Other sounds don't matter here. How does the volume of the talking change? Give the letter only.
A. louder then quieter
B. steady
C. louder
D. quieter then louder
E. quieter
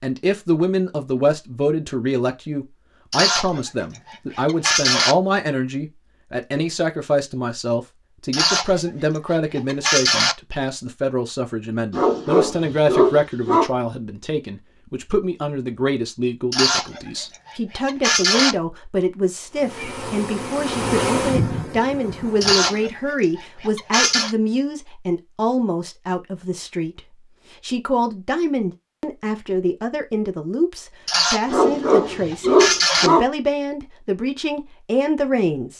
B.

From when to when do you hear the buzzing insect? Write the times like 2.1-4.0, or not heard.
19.5-22.9.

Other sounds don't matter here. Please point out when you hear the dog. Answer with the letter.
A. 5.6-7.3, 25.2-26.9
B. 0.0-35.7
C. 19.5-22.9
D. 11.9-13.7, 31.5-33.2
D.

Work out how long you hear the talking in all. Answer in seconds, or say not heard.
36 s.